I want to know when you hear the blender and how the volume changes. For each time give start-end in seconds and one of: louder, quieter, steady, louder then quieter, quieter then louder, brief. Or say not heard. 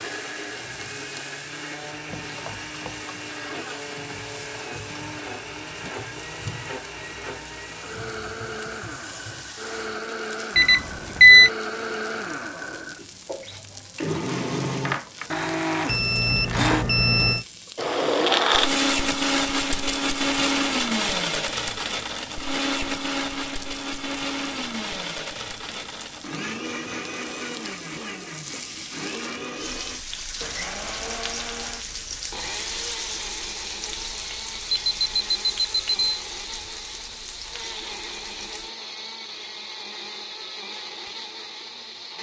0.0-42.1 louder then quieter.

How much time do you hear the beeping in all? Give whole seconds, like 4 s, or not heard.
4 s.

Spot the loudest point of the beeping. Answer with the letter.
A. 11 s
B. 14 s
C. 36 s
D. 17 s
A.